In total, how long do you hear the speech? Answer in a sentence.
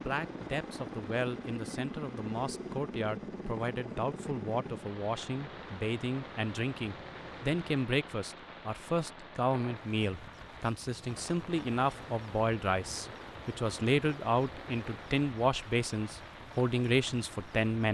You can hear the speech for 18 seconds altogether.